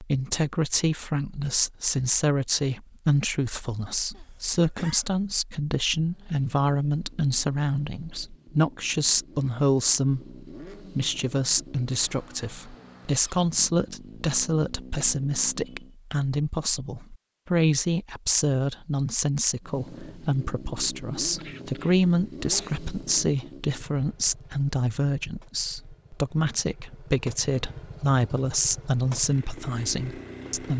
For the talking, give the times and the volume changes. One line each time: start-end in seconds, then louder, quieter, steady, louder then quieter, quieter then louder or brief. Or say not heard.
0.0-30.7 steady.